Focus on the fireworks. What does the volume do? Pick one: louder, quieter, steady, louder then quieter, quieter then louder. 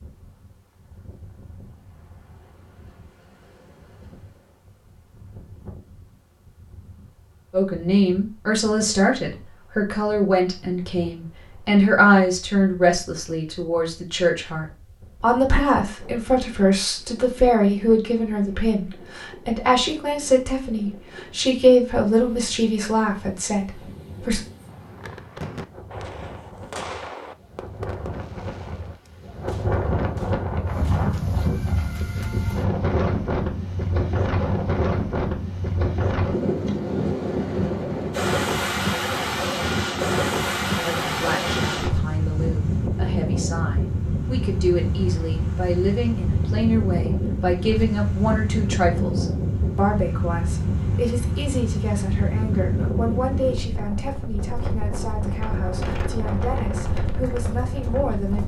quieter.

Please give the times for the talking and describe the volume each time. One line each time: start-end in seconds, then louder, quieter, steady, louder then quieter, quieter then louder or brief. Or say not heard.
7.5-24.4 steady
40.8-58.4 louder then quieter.